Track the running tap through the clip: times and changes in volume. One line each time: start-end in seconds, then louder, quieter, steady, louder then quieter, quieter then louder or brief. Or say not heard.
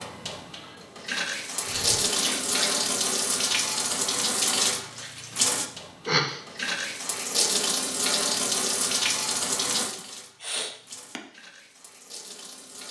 0.0-12.8 quieter.